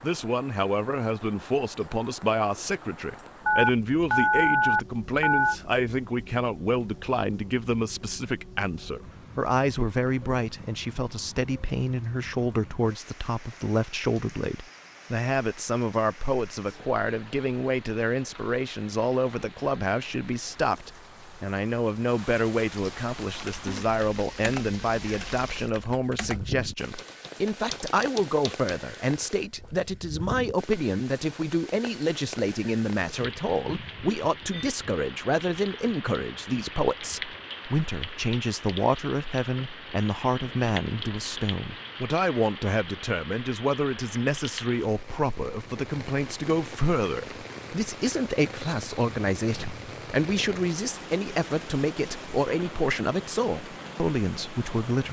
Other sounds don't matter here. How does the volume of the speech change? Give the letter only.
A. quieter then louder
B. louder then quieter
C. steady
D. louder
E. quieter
C.